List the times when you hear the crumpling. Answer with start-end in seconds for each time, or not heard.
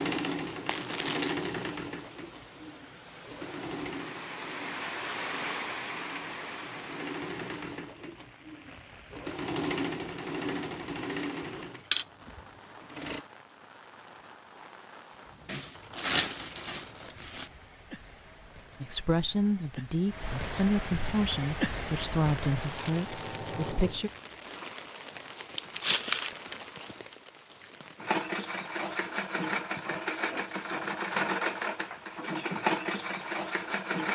0.7-1.4, 15.4-17.5, 25.6-27.3.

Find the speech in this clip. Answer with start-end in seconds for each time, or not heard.
18.8-24.1.